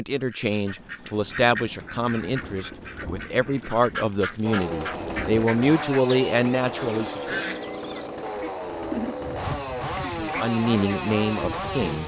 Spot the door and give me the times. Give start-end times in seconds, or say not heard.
not heard.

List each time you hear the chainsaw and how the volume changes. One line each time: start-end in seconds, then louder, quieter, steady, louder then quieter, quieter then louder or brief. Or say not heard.
4.4-12.0 steady.